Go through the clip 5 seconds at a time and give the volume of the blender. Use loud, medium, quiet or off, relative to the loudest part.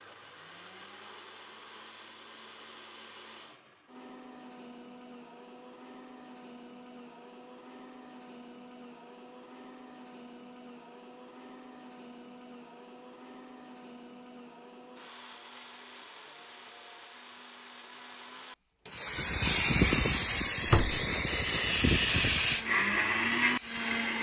quiet, quiet, quiet, quiet, loud.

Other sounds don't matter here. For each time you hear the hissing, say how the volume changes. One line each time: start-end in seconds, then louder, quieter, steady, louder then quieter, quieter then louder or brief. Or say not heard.
18.9-24.1 quieter.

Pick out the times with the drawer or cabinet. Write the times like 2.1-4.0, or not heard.
20.2-21.1.